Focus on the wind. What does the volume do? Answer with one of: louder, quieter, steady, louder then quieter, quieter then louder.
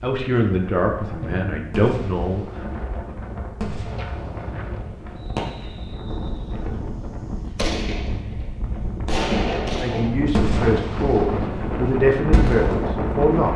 louder.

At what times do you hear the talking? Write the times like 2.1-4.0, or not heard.
0.0-2.6, 9.8-13.5.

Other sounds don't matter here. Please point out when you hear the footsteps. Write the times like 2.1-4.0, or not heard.
not heard.